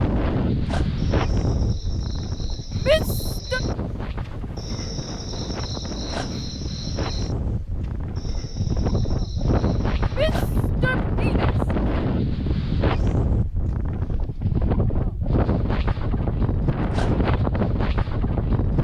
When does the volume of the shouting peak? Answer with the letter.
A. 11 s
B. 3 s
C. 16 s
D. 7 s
B.